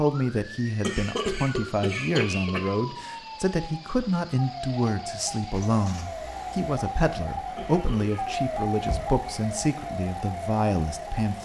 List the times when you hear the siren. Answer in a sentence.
You can hear the siren from 0.0 to 11.4 s.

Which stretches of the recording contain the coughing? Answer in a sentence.
You can hear the coughing from 0.8 to 3.0 s and from 7.5 to 8.3 s.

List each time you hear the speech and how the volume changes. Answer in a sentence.
You can hear the speech from 0.0 to 11.4 s, at a steady volume.